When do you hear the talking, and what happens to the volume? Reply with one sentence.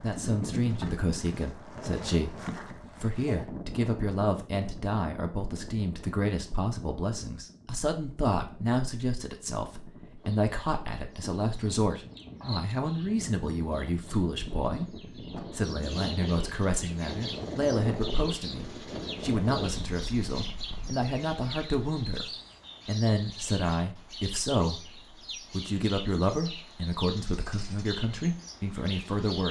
You can hear the talking from 0.0 to 29.4 s, at a steady volume.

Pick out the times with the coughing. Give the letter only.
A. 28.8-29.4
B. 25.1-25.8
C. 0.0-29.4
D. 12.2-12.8
D.